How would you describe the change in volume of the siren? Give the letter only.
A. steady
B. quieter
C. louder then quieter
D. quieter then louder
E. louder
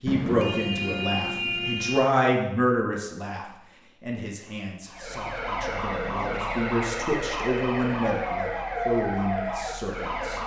A.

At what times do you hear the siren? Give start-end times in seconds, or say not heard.
4.8-10.4.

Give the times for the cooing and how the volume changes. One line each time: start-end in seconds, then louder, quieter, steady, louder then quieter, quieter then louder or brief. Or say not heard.
not heard.